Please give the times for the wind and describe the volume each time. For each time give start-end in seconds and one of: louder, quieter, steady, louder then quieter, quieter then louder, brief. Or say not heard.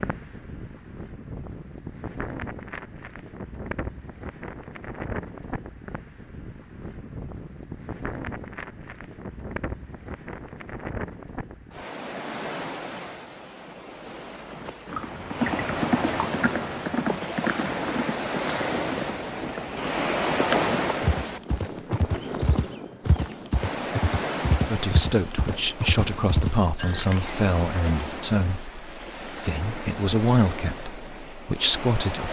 0.0-32.2 louder then quieter.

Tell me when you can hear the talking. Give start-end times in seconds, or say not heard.
24.6-32.2.